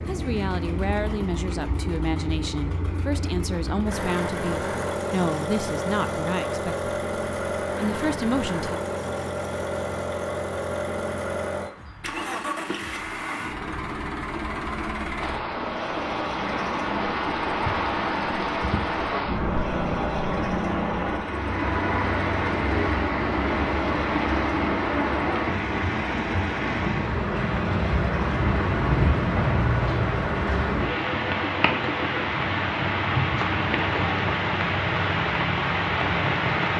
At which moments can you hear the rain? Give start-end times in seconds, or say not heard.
15.2-36.7.